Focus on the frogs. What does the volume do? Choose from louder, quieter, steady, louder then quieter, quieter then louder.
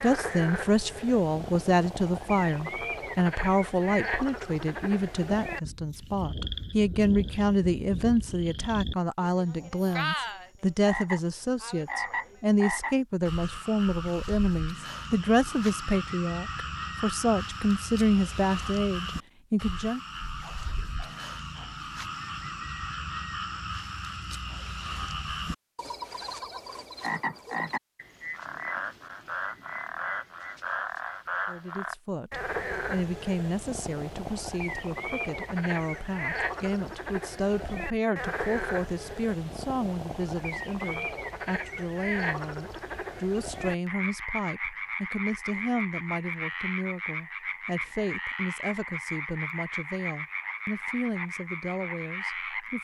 steady.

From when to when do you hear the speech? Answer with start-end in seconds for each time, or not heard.
0.0-20.0, 31.4-52.7.